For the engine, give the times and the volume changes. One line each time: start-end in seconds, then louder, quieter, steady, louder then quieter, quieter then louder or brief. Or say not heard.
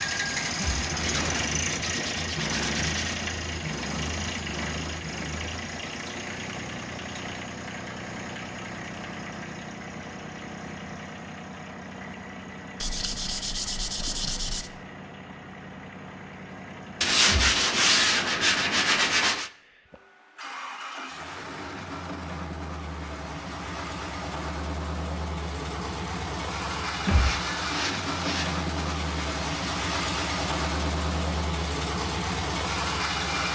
0.0-33.5 quieter then louder.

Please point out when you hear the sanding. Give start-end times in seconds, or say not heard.
1.1-3.2, 12.8-14.7, 17.0-19.5, 27.1-28.6.